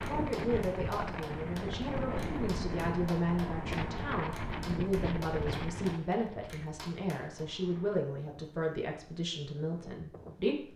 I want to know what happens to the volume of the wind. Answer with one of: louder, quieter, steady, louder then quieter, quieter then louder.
quieter.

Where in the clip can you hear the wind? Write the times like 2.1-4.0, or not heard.
0.0-10.7.